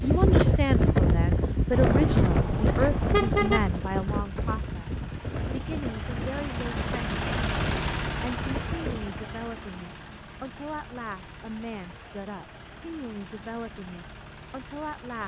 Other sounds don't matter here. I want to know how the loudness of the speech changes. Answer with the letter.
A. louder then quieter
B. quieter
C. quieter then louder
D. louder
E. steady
B.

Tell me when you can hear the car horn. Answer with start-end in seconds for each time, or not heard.
1.7-3.7.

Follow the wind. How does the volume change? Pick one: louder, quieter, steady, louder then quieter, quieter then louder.
quieter.